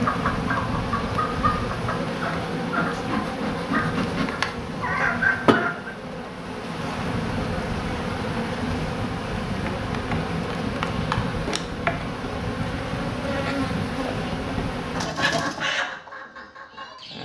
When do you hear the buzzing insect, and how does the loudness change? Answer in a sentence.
You can hear the buzzing insect from 0.0 to 15.1 s, at a steady volume.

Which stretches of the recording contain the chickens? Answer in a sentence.
The chickens can be heard from 0.0 to 6.0 s and from 14.9 to 17.2 s.